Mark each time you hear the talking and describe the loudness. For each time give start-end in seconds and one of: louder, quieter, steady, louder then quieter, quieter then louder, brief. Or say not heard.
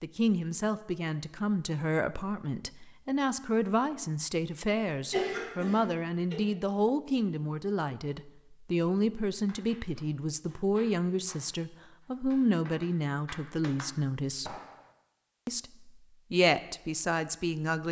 0.0-14.6 steady
15.4-17.8 brief.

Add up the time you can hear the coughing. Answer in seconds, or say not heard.
2 s.